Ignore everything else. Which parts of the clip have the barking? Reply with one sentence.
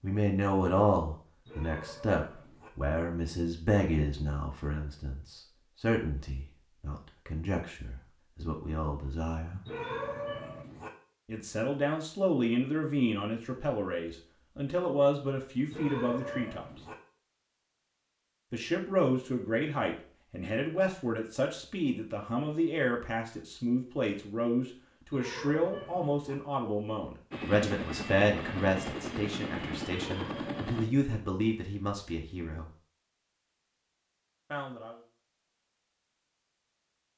You can hear the barking from 1.4 to 2.7 s, from 9.7 to 10.9 s, from 15.7 to 16.9 s, from 25.1 to 26.4 s and from 30.1 to 31.2 s.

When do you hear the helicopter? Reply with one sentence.
The helicopter can be heard from 27.3 to 30.9 s.